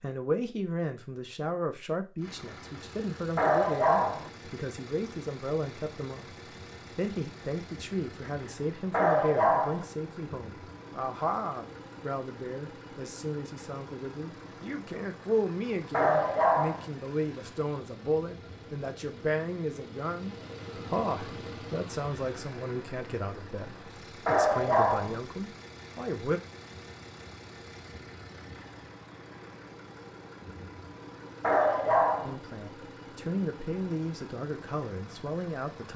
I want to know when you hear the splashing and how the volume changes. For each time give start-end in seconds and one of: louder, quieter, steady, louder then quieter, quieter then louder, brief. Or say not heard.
not heard.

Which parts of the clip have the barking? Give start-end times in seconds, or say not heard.
3.4-4.3, 8.9-9.8, 15.9-16.9, 24.2-25.2, 31.4-32.4.